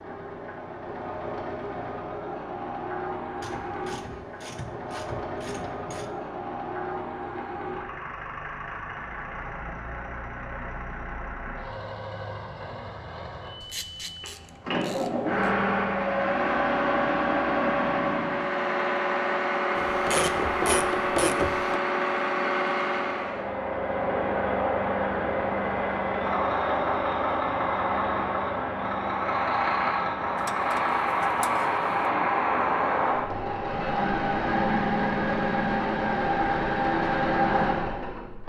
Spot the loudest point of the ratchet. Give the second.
21 s.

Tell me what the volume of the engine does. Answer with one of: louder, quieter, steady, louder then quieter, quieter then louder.
louder.